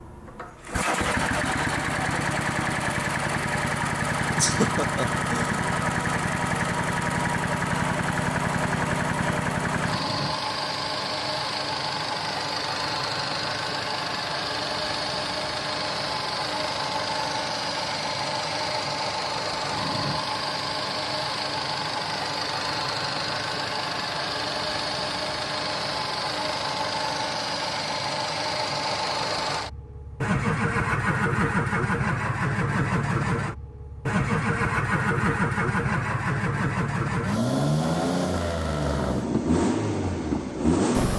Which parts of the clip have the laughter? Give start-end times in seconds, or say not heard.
4.3-5.6.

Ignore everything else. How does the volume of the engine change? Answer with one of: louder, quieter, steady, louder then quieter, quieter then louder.
steady.